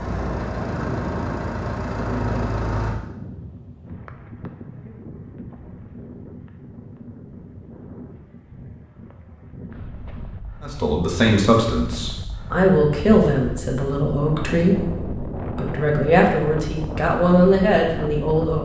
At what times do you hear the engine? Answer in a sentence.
You can hear the engine from 0.0 to 3.0 s.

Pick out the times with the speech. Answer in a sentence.
The speech can be heard from 10.6 to 18.6 s.